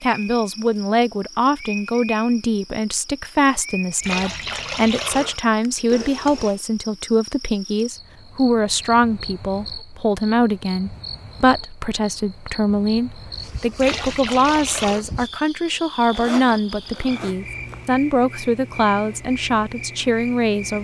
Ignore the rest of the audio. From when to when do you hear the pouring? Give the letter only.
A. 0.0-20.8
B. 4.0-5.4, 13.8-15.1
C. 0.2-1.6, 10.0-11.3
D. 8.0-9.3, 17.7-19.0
B.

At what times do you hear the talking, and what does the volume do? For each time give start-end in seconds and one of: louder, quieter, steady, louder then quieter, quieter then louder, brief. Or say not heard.
0.0-20.8 steady.